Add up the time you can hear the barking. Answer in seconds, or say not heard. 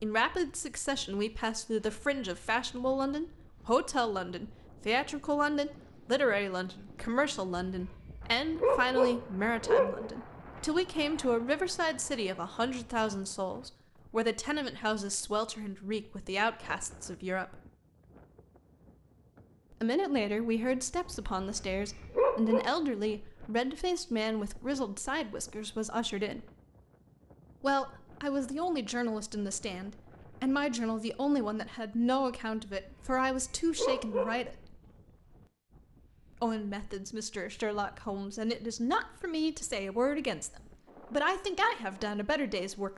6 s.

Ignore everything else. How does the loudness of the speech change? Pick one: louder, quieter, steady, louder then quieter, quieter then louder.
steady.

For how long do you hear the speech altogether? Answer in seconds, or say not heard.
38 s.